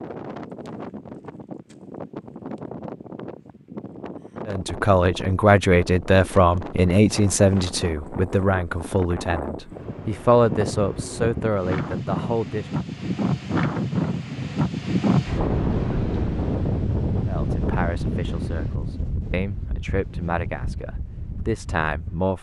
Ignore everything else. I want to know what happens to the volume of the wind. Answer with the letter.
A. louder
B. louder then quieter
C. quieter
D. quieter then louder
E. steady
B.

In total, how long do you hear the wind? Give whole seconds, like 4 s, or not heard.
22 s.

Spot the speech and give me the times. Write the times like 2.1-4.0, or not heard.
4.5-12.7, 17.2-22.3.